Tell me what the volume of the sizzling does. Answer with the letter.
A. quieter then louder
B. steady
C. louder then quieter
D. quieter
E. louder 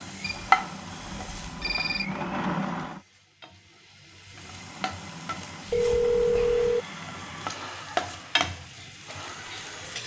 A.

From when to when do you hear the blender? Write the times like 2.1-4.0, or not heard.
0.0-3.0, 4.3-10.0.